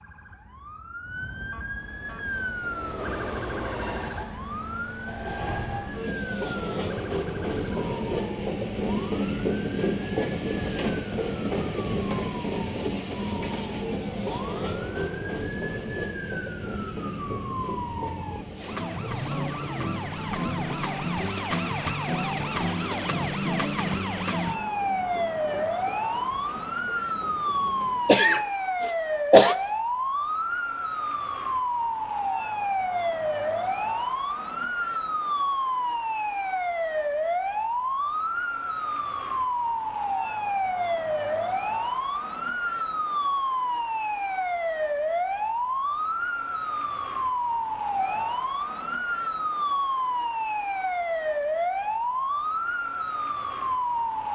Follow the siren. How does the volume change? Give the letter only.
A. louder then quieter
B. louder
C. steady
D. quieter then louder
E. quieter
B.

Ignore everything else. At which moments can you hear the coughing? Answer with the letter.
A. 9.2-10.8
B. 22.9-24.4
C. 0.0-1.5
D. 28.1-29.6
D.